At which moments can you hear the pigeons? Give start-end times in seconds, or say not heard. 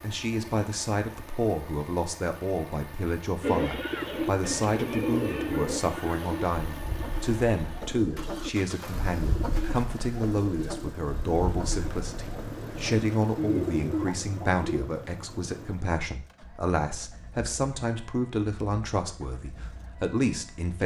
3.4-14.8.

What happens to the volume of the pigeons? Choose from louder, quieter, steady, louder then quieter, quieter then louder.
quieter then louder.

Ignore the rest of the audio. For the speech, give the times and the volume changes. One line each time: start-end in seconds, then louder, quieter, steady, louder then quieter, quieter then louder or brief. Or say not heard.
0.0-20.8 steady.